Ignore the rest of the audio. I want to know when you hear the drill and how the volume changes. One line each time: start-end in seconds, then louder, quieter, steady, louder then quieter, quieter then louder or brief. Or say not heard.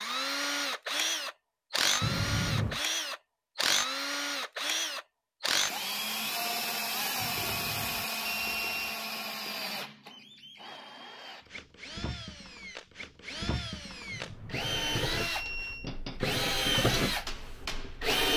0.0-18.3 quieter then louder.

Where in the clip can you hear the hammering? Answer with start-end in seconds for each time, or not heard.
15.8-18.2.